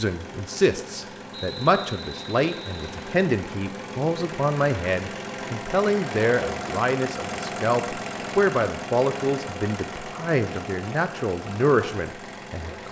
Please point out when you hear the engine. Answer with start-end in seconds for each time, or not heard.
0.0-12.8.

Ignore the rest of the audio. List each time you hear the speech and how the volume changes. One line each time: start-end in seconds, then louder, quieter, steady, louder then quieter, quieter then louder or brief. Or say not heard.
0.0-12.8 steady.